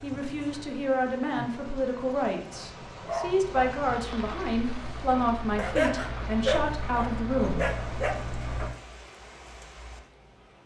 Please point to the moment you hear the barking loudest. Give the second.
6 s.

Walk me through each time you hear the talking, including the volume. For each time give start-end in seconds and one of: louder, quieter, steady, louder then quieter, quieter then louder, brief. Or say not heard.
0.0-7.7 steady.